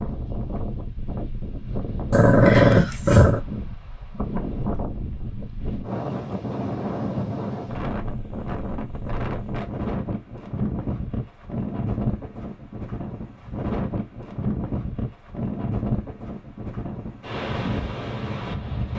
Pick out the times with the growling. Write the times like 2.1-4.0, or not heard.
2.1-3.4.